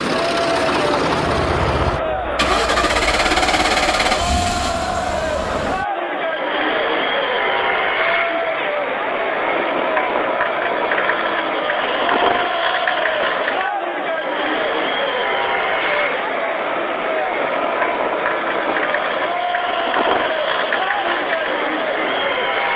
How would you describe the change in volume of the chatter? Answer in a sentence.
The volume of the chatter stays about the same.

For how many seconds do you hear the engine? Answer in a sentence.
The engine can be heard for 23 seconds in total.